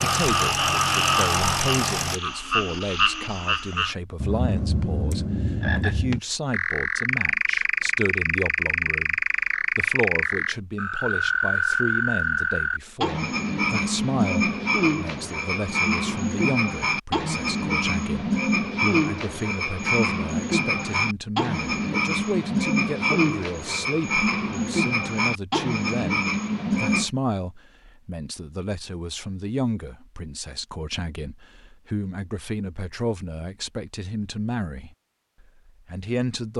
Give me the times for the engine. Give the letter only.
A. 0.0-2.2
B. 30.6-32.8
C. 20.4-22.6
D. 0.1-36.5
A.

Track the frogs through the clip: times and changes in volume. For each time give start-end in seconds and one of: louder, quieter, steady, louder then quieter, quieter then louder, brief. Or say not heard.
0.0-27.1 steady.